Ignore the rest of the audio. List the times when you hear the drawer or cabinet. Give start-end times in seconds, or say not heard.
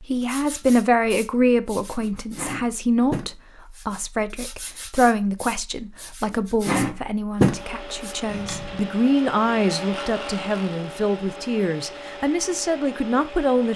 8.2-8.9.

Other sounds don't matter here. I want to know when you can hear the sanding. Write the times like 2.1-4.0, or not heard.
0.2-8.2.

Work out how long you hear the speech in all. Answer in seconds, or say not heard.
14 s.